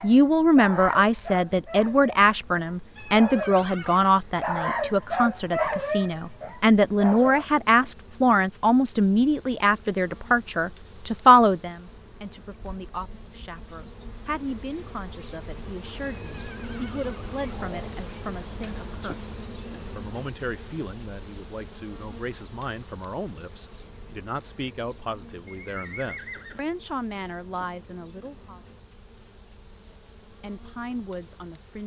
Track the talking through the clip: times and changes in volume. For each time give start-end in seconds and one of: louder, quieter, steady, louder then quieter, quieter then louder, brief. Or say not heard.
0.0-28.6 quieter
30.3-31.8 brief.